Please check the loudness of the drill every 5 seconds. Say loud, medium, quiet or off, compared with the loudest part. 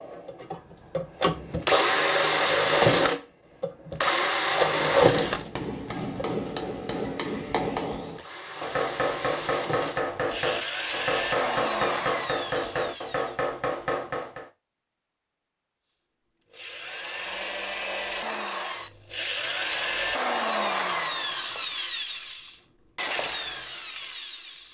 loud, medium, medium, medium, medium.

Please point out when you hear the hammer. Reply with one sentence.
The hammer can be heard from 5.0 to 14.5 s.